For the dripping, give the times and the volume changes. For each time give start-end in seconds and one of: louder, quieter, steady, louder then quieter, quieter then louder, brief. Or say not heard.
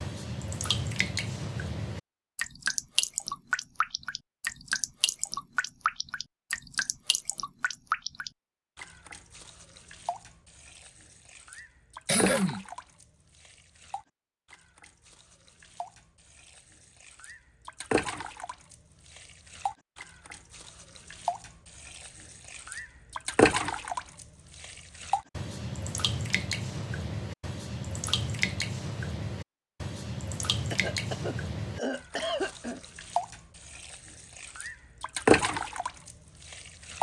0.0-36.9 quieter then louder.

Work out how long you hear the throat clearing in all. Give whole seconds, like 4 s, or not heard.
3 s.